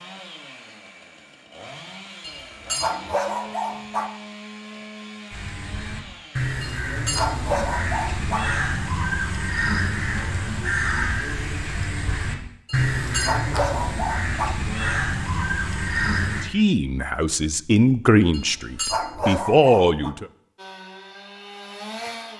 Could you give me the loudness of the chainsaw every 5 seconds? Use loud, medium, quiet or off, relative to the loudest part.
loud, loud, off, off, loud.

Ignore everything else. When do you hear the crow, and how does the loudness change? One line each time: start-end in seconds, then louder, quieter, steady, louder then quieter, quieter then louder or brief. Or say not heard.
5.3-16.4 steady.